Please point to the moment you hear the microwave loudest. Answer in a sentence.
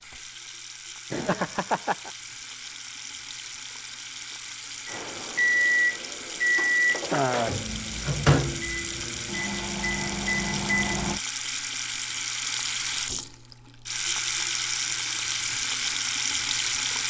The loudest moment of the microwave is at 7 seconds.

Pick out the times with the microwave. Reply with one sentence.
The microwave can be heard from 4.8 to 11.2 s.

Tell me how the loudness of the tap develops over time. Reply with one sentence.
The volume of the tap goes up.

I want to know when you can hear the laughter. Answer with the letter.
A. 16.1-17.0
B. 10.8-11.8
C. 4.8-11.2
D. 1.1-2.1
D.